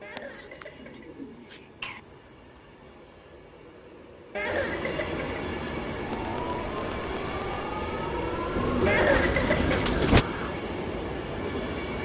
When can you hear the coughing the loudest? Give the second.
9 s.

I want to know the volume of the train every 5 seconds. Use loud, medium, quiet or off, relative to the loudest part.
medium, loud, loud.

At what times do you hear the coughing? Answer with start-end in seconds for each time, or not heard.
0.0-2.0, 4.3-5.3, 8.8-9.9.